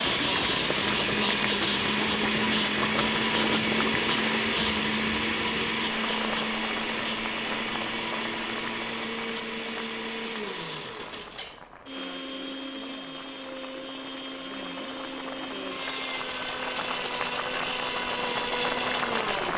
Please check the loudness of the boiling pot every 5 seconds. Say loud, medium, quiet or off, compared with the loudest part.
loud, medium, quiet, loud.